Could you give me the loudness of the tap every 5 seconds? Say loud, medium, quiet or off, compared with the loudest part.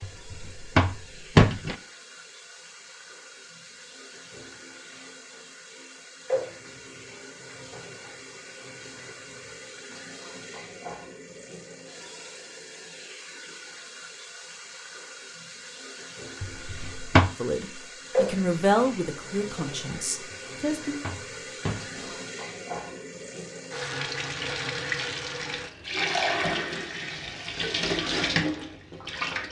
quiet, quiet, quiet, medium, medium, loud.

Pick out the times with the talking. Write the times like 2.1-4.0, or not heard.
17.3-21.0.